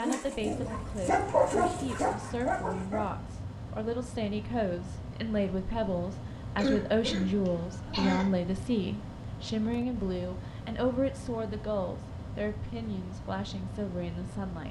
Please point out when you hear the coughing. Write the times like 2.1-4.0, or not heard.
6.5-8.3.